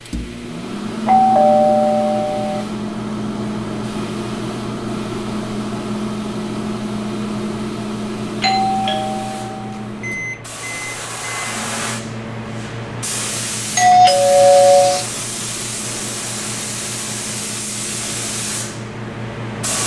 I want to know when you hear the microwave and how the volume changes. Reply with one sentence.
The microwave can be heard from 0.0 to 19.8 s, getting quieter.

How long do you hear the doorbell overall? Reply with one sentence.
You can hear the doorbell for 4 seconds altogether.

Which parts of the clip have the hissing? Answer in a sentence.
You can hear the hissing from 0.0 to 19.8 s.